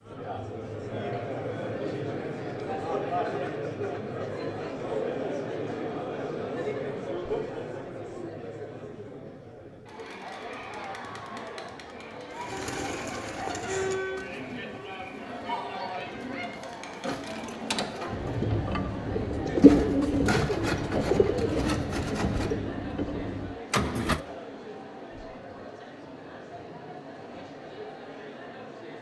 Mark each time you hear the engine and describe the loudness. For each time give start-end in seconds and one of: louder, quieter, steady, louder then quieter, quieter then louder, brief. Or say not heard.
18.1-24.2 louder then quieter.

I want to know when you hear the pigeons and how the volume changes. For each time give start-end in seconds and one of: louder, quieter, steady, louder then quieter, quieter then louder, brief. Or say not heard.
12.3-22.6 quieter then louder.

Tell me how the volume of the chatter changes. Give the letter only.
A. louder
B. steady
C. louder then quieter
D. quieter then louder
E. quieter
E.